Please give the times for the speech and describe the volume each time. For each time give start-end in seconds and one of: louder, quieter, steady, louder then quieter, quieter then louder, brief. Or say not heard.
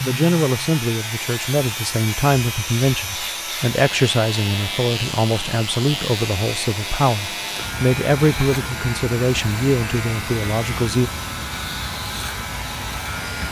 0.0-11.1 steady.